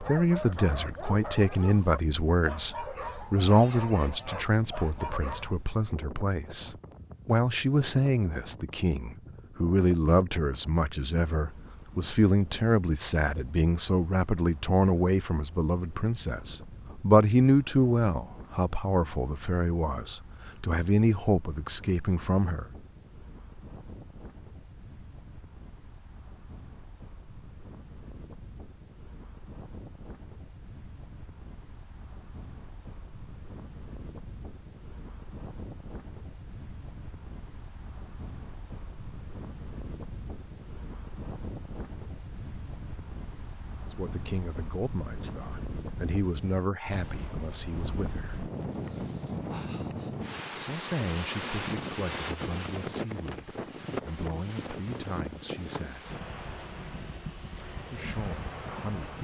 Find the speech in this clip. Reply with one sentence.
The speech can be heard from 0.0 to 22.6 s, from 44.0 to 48.4 s, from 50.5 to 56.1 s and from 57.9 to 59.1 s.